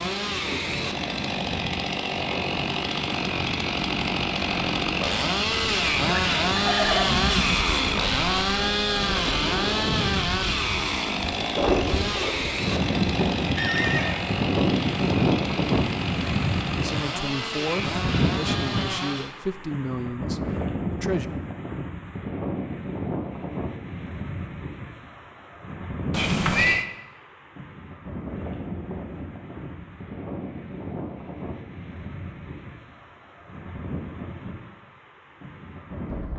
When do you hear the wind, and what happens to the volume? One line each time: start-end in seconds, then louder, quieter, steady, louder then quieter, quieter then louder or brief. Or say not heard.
0.0-36.3 louder then quieter.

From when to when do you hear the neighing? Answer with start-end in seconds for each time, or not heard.
6.0-7.7, 13.6-14.2, 26.1-26.9.